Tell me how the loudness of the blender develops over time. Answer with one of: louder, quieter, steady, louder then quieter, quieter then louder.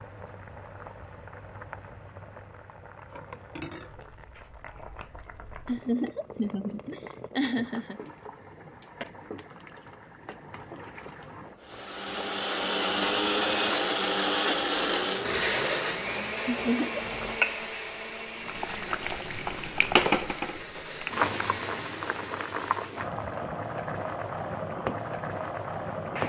quieter.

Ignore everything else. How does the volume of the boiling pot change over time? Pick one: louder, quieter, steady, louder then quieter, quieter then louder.
louder.